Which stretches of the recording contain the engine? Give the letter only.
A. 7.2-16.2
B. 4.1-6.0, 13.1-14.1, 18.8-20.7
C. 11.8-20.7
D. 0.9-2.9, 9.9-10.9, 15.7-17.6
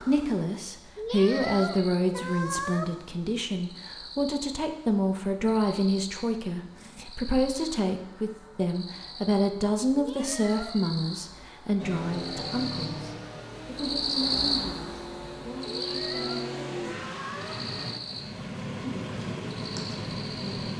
C.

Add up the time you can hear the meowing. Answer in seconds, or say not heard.
5 s.